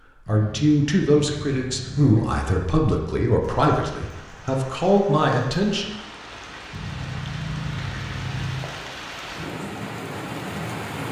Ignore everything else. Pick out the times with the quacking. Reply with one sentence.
The quacking can be heard from 0.2 to 2.2 s and from 6.7 to 8.6 s.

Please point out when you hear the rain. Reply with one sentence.
The rain can be heard from 3.4 to 11.0 s.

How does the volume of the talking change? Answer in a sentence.
The volume of the talking stays about the same.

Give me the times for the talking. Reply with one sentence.
You can hear the talking from 0.1 to 5.8 s.